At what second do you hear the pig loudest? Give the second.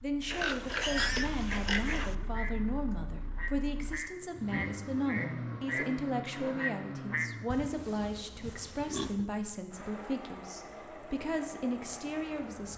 1 s.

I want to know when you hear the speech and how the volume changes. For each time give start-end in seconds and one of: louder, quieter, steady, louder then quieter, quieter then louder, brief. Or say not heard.
0.0-12.7 steady.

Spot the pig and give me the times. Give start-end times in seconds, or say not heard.
0.2-2.1, 7.5-9.2.